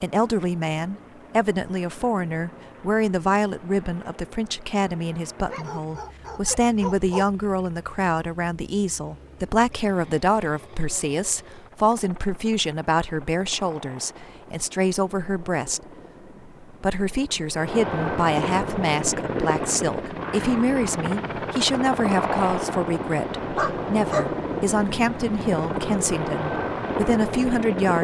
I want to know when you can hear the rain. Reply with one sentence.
The rain can't be heard in this clip.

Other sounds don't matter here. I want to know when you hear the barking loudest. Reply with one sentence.
The volume of the barking peaks at 24 seconds.